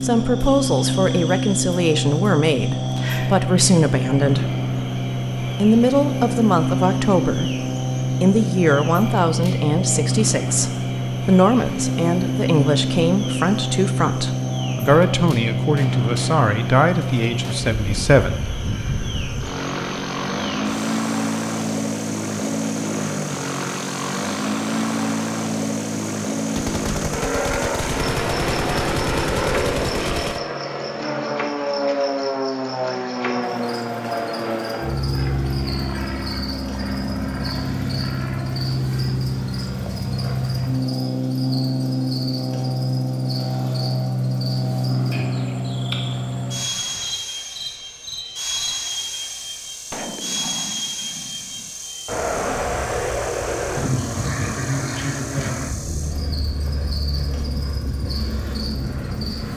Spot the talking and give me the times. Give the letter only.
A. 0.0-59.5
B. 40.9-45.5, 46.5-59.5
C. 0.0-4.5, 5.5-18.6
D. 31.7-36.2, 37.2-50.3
C.